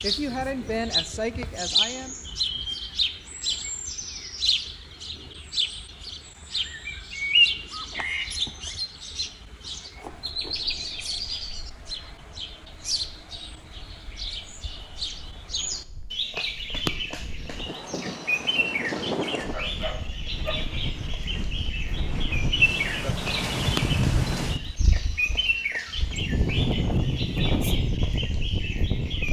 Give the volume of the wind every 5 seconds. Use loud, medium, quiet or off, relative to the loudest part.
off, off, quiet, medium, loud, loud.